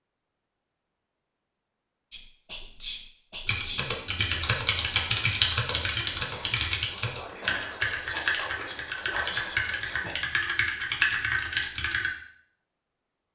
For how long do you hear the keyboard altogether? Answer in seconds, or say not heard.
9 s.